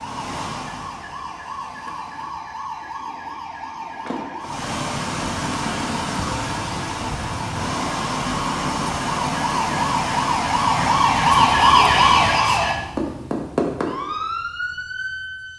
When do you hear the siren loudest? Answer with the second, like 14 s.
12 s.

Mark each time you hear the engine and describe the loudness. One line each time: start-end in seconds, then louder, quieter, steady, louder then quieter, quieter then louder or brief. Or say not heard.
0.0-2.2 brief
4.4-12.6 steady.